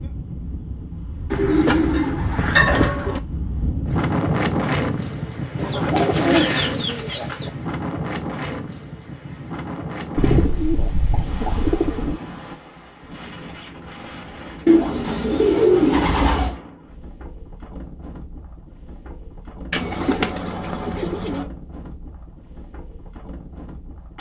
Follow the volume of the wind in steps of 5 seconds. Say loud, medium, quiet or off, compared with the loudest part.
loud, loud, medium, quiet, quiet.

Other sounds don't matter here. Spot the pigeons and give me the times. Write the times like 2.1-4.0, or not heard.
1.3-3.2, 5.5-7.5, 10.2-12.2, 14.7-16.6, 19.7-21.4.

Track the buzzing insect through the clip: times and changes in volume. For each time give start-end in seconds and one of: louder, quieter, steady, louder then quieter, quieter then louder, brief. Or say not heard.
not heard.